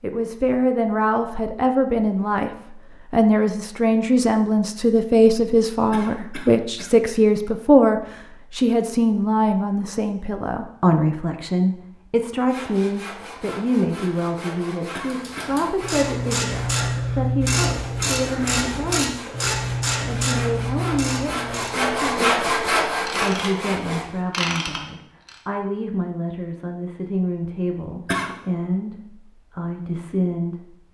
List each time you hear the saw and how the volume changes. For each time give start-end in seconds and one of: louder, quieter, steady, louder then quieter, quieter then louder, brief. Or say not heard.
12.3-24.4 louder.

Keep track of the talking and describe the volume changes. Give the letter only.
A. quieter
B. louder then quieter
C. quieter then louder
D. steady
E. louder
A.